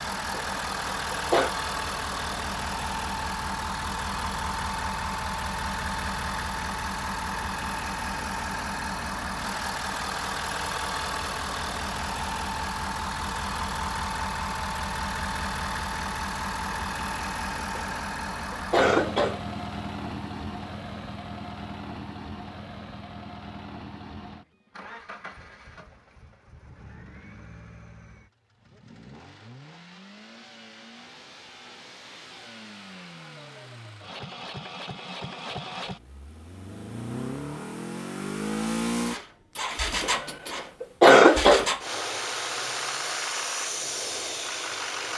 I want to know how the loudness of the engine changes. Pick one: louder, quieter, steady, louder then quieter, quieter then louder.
quieter then louder.